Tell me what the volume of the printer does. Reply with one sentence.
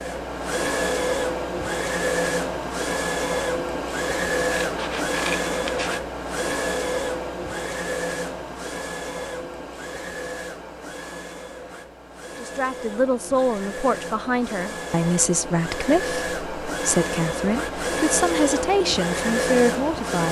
The loudness of the printer goes down, then up.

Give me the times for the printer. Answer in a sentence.
The printer can be heard from 0.0 to 20.2 s.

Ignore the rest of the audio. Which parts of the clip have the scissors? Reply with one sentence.
The scissors can be heard from 4.6 to 6.0 s.